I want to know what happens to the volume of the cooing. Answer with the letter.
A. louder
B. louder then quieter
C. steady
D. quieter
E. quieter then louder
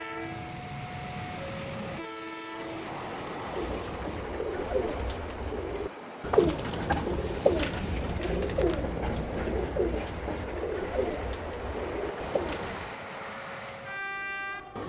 B.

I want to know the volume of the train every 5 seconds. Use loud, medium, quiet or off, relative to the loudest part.
loud, medium, loud.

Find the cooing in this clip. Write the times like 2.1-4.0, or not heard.
3.5-12.9.